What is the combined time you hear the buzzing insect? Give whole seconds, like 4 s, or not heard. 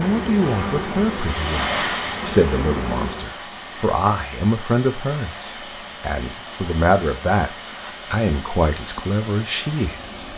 3 s.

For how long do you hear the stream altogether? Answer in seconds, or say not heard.
10 s.